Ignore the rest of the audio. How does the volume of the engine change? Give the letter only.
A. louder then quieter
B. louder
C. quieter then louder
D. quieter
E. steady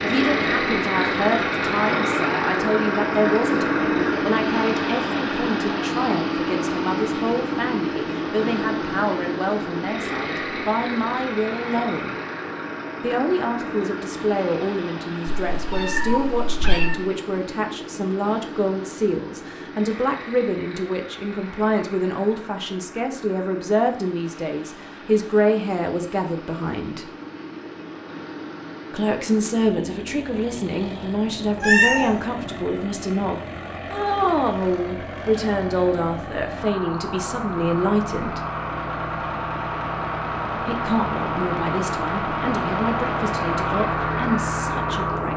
C.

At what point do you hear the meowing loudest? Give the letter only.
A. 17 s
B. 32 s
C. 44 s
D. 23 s
B.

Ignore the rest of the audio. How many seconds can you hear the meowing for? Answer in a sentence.
You can hear the meowing for 2 seconds altogether.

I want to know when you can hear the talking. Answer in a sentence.
You can hear the talking from 0.0 to 12.2 s, from 13.0 to 27.1 s, from 28.9 to 38.4 s and from 40.5 to 45.3 s.